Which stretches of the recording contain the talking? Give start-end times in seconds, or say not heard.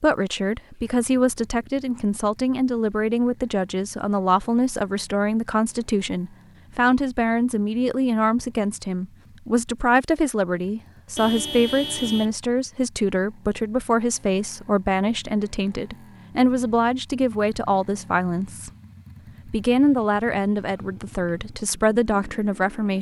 0.0-18.7, 19.4-22.9.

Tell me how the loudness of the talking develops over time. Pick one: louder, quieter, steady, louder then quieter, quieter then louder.
steady.